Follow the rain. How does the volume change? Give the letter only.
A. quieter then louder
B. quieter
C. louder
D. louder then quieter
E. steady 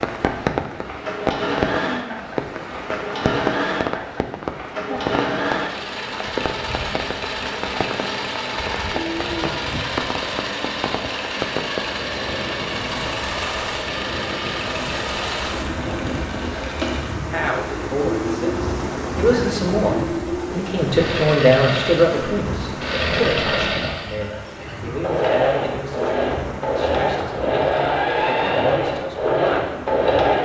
B.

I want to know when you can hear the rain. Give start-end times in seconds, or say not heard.
0.0-30.4.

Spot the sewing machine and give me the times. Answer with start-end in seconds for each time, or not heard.
0.1-30.4.